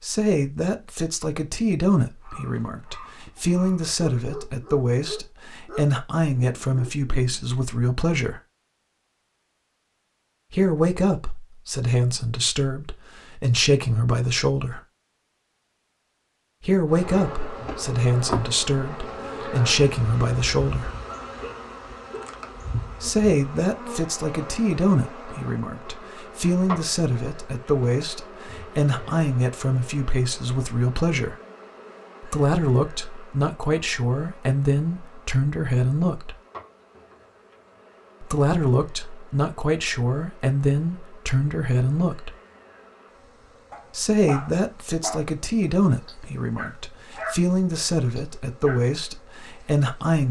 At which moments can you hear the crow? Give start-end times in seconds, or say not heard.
not heard.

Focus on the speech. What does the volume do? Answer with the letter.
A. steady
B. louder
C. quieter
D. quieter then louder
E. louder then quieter
A.